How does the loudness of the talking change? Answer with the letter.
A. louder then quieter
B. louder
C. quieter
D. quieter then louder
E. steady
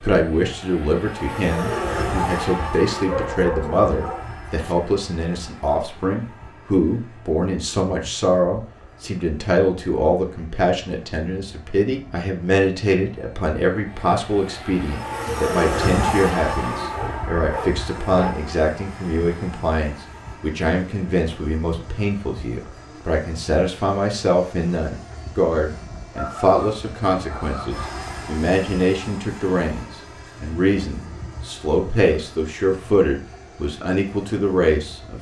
E.